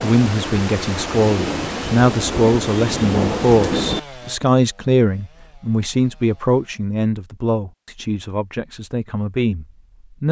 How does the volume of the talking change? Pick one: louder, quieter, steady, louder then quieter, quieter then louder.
quieter.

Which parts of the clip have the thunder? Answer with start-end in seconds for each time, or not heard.
0.0-4.0.